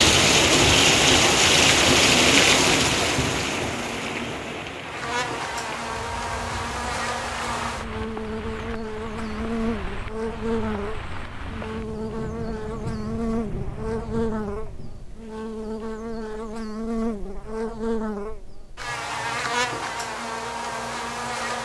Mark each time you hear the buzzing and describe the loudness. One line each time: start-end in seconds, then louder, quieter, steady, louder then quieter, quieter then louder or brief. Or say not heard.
4.8-21.6 steady.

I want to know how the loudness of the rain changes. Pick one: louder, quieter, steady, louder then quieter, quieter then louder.
quieter.